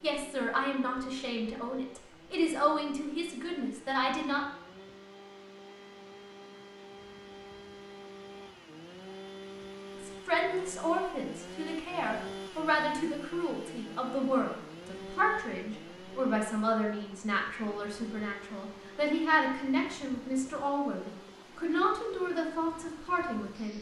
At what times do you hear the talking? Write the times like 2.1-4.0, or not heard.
0.0-4.5, 10.0-23.7.